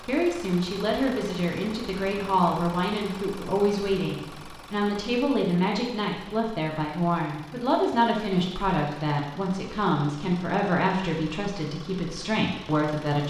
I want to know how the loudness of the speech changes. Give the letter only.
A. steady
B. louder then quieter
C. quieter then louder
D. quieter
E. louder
A.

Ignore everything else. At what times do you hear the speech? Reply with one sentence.
The speech can be heard from 0.0 to 13.2 s.